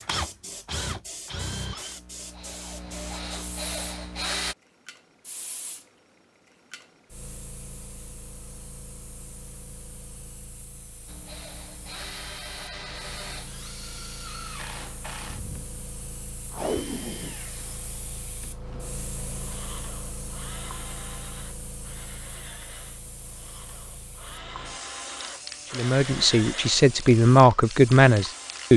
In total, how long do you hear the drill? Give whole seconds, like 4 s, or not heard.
22 s.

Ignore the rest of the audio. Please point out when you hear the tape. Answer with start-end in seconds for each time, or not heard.
16.5-17.4.